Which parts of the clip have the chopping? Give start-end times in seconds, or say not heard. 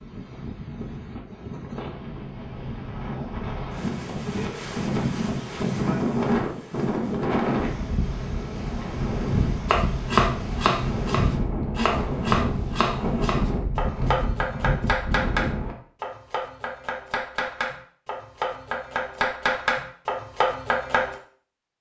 9.7-21.1.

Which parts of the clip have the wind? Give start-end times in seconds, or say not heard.
0.0-15.8.